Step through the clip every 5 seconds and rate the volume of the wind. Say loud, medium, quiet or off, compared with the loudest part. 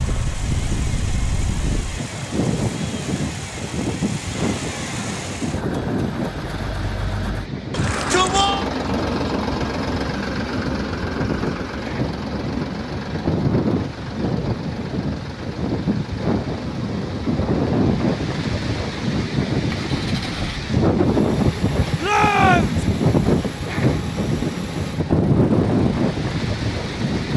medium, medium, medium, loud, loud, loud.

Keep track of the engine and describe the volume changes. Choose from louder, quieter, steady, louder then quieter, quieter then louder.
louder then quieter.